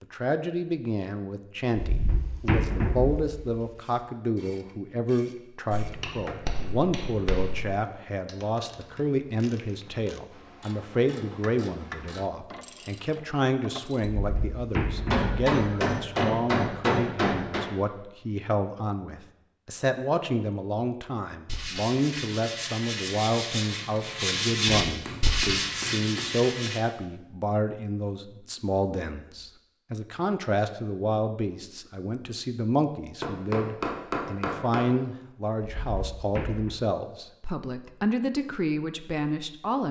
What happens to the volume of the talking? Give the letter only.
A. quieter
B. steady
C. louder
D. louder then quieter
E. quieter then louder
B.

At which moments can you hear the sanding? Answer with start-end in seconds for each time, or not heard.
21.4-26.8.